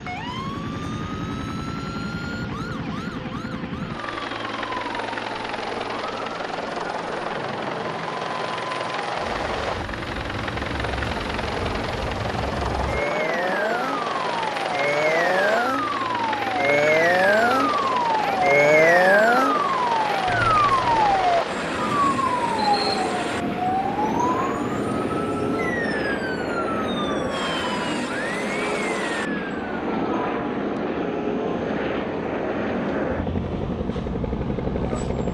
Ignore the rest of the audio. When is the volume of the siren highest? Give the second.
19 s.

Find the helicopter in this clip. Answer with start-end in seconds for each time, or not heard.
0.0-35.2.